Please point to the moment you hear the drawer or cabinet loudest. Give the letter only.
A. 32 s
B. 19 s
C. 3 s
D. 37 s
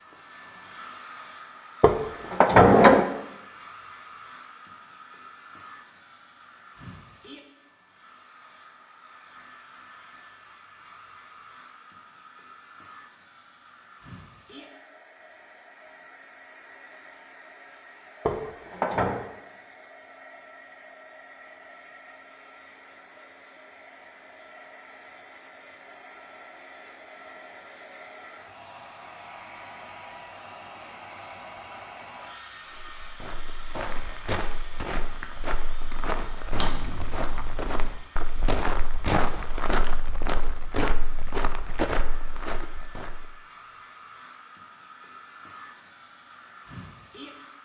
C.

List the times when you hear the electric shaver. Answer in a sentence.
You can't hear the electric shaver here.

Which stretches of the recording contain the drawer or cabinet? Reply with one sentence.
You can hear the drawer or cabinet from 1.8 to 3.0 s, from 18.2 to 19.2 s and from 36.5 to 37.8 s.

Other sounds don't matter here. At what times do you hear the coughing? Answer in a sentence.
The coughing can't be heard in this clip.